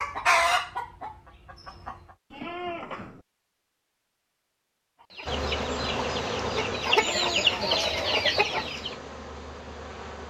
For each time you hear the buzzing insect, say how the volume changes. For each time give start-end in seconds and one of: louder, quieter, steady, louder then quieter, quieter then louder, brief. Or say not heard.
5.2-10.2 quieter.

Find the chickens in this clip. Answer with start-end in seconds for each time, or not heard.
0.0-2.1, 5.0-8.9.